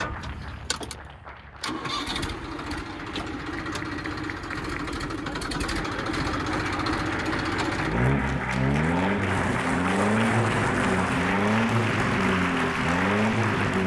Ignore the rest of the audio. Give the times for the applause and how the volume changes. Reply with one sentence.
You can hear the applause from 0.0 to 13.8 s, getting louder.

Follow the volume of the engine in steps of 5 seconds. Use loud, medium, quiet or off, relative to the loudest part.
medium, loud, loud.